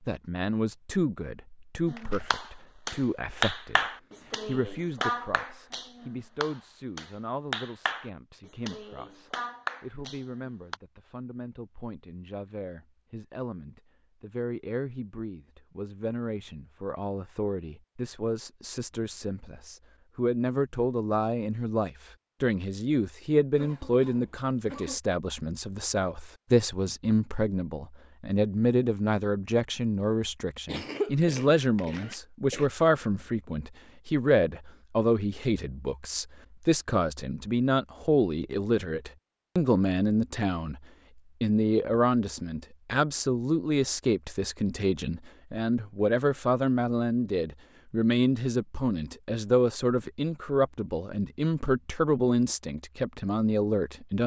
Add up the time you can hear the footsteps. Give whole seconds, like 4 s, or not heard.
not heard.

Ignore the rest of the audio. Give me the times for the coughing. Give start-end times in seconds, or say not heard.
23.6-25.0, 30.6-32.7.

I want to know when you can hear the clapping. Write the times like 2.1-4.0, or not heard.
1.9-10.8.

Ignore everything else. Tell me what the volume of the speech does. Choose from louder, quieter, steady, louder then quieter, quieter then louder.
louder.